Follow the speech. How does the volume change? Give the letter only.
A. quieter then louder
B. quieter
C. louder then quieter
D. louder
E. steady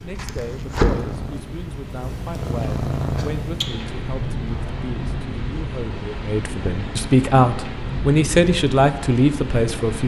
D.